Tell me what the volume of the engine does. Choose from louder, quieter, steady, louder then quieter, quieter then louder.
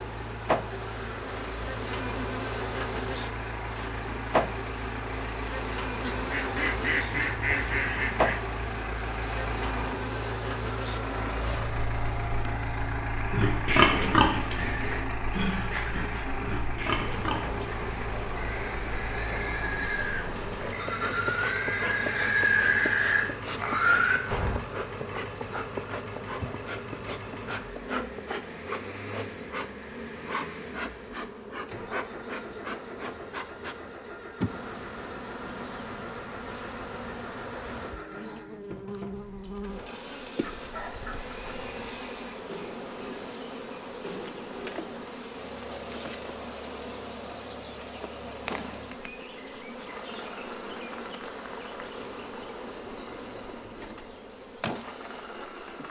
quieter.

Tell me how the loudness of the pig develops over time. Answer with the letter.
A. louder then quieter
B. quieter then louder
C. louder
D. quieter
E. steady
B.